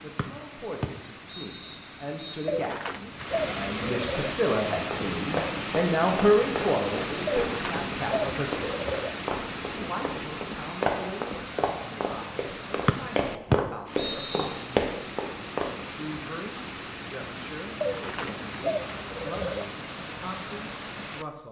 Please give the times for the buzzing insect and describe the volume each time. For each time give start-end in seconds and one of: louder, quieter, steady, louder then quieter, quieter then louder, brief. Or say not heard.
not heard.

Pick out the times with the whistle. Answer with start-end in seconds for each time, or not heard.
0.1-2.5, 12.8-14.7.